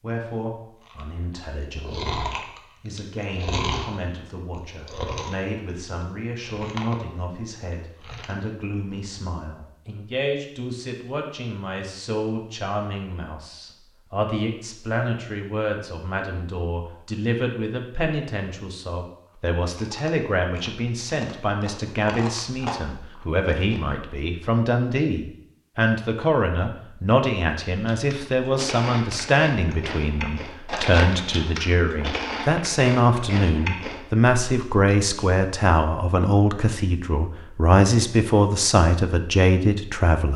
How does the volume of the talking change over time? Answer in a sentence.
The loudness of the talking goes up.